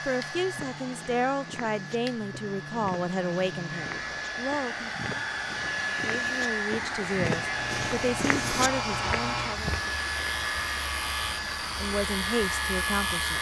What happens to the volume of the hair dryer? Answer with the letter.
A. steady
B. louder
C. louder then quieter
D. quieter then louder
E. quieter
B.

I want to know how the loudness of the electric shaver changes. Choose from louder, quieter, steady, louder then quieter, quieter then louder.
louder.